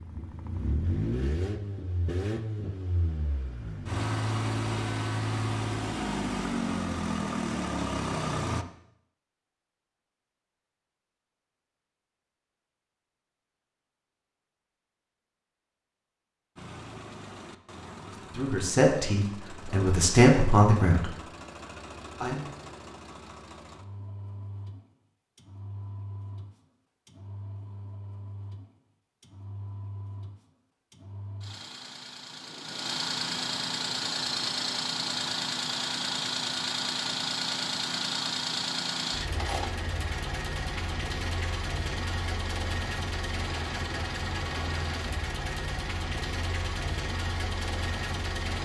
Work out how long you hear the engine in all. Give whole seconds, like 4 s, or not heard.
41 s.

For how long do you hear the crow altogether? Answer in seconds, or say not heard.
not heard.